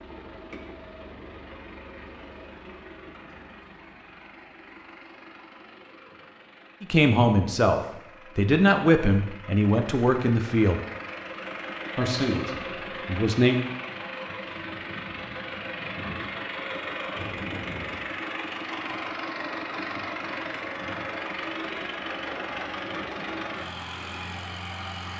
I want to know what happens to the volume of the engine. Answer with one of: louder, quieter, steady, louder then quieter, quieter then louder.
louder.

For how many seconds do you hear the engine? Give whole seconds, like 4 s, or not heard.
25 s.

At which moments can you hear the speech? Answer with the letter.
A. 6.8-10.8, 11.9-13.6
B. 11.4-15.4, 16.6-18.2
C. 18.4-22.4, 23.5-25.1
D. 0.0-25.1
A.